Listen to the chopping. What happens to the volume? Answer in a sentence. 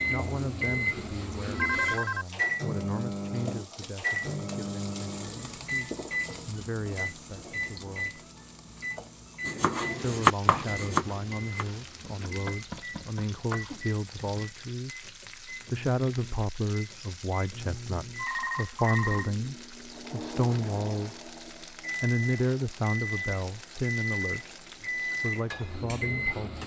The volume of the chopping goes down, then up.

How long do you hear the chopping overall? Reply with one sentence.
The chopping can be heard for 5 seconds in total.